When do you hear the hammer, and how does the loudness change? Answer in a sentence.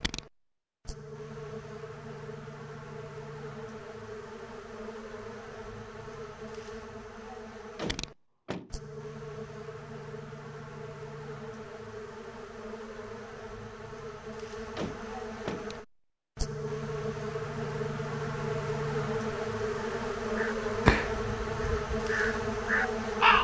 The hammer can't be heard in this clip.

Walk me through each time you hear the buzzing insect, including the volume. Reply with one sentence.
You can hear the buzzing insect from 0.0 to 23.3 s, getting louder.